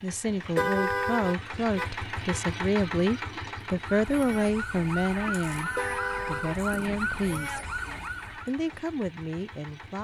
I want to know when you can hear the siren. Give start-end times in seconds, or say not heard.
3.6-8.5.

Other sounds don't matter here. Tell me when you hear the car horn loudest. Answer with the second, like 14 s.
1 s.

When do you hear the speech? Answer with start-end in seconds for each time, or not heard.
0.0-7.7, 8.3-9.9.